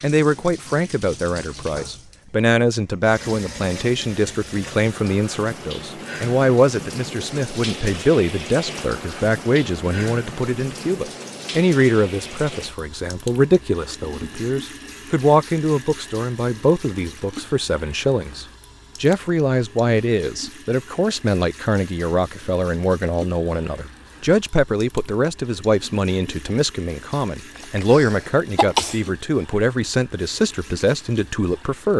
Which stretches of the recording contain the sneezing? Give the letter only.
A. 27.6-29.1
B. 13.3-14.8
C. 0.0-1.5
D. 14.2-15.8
A.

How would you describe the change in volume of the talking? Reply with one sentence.
The volume of the talking stays about the same.